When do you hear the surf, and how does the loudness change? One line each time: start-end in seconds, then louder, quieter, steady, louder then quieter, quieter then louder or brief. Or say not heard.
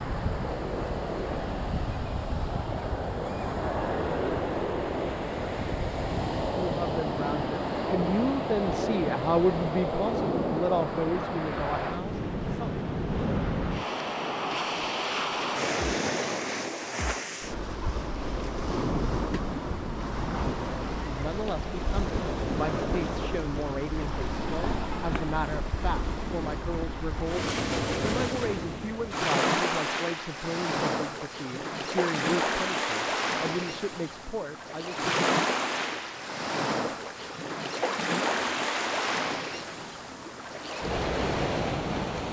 0.0-42.2 steady.